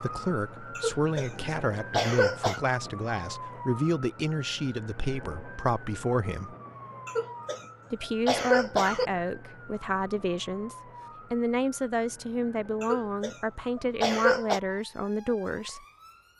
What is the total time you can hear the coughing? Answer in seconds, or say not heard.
6 s.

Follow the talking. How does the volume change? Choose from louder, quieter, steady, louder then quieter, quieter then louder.
steady.